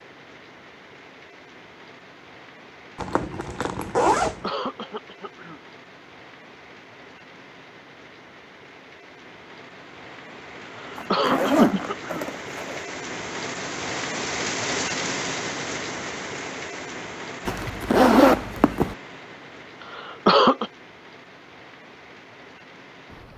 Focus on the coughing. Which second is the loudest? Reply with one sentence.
The loudest moment of the coughing is at 20 seconds.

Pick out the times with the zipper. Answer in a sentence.
The zipper can be heard from 3.0 to 4.5 s, from 10.9 to 12.8 s and from 17.4 to 18.9 s.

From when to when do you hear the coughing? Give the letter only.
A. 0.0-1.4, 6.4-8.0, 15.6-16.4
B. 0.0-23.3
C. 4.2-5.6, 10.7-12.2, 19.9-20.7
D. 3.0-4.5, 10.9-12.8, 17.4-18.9
C.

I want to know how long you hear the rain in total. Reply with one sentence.
The rain can be heard for 23 seconds in total.